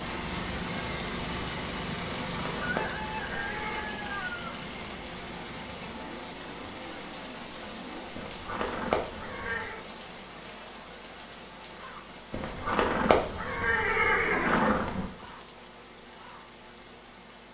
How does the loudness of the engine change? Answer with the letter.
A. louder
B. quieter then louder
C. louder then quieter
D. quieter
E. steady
D.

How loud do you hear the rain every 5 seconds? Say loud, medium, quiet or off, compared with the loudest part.
loud, loud, medium, medium.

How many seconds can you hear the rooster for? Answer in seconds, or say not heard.
2 s.